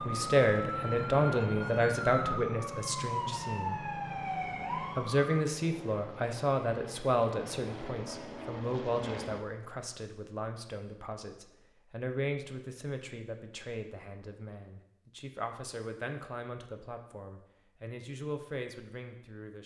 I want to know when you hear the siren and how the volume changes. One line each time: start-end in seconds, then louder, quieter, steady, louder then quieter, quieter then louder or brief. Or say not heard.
0.0-5.5 steady.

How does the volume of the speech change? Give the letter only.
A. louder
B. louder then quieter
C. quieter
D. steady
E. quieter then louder
C.